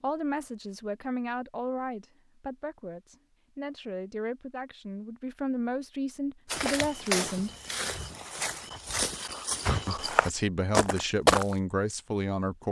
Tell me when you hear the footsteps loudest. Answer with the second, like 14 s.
11 s.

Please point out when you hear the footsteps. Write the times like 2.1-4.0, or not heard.
6.5-11.6.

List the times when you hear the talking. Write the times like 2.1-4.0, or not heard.
0.0-7.5, 9.8-12.6.